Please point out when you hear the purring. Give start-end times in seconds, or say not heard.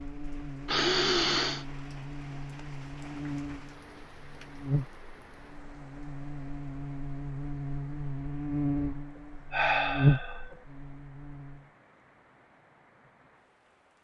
not heard.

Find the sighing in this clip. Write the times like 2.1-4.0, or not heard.
0.7-1.6, 9.2-10.6.